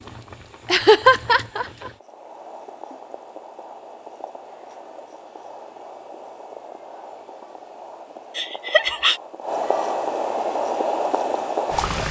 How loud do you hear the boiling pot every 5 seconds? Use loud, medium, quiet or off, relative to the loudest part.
quiet, medium, loud.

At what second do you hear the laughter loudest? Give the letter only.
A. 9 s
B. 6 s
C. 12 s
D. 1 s
D.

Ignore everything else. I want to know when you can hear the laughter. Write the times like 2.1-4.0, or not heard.
0.7-1.9, 8.3-9.2.